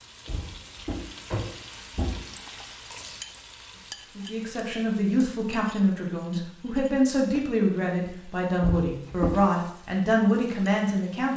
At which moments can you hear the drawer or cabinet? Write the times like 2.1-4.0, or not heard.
0.2-2.3, 8.6-9.4.